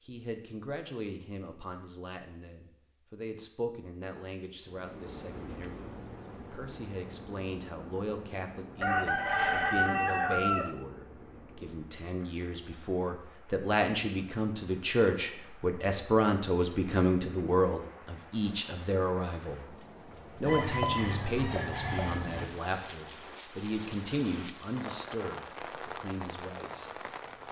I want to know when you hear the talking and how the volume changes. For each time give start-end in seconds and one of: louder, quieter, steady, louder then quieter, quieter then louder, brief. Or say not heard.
0.0-27.4 louder then quieter.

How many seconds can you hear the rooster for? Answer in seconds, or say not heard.
4 s.